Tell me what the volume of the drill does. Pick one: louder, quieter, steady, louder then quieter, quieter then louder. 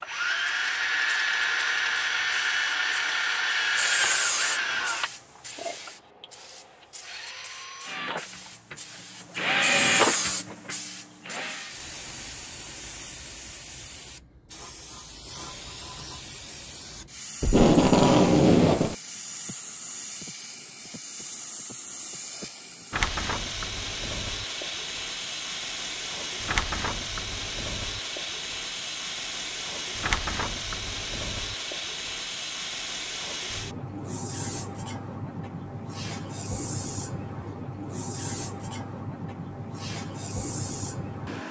quieter then louder.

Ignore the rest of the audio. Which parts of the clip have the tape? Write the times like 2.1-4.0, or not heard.
17.4-18.9.